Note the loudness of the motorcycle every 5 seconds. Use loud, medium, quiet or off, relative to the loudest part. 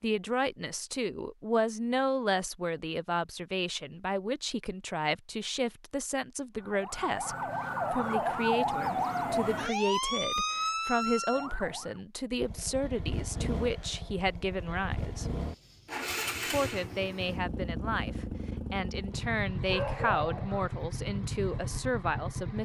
off, off, loud, loud, loud.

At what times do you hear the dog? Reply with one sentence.
You can hear the dog from 19.7 to 20.7 s.